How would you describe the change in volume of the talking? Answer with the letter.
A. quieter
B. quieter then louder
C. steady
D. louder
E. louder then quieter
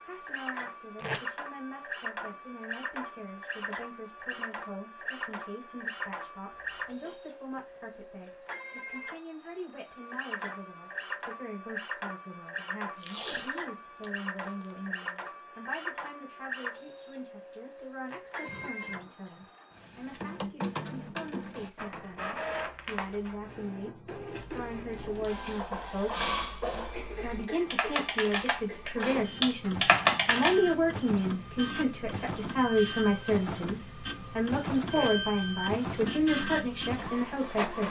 D.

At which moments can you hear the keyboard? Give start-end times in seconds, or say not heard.
24.4-30.6.